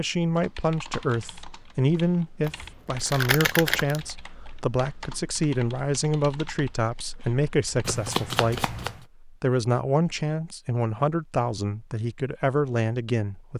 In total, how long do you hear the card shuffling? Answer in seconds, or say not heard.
3 s.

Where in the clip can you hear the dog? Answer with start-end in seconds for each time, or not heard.
not heard.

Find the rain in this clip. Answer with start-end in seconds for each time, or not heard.
not heard.